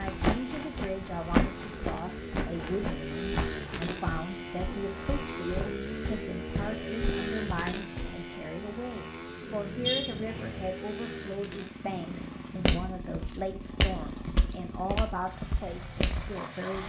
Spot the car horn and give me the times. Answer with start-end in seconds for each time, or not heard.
9.8-10.7.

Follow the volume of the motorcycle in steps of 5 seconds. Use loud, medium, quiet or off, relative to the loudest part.
loud, loud, medium, medium.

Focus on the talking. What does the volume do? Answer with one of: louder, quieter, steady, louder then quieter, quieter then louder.
steady.